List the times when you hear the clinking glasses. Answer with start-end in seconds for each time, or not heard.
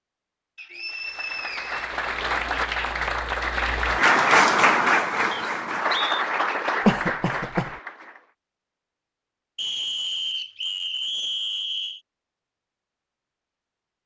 not heard.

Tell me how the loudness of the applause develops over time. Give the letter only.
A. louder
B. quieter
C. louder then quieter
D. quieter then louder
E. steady
C.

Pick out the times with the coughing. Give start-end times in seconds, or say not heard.
6.8-7.7.